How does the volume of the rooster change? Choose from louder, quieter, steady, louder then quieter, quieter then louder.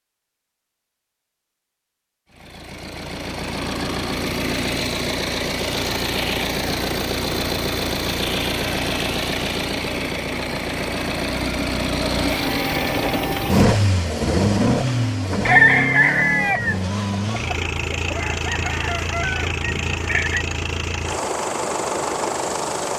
quieter.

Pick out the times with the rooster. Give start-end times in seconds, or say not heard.
15.4-20.4.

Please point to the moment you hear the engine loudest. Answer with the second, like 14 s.
14 s.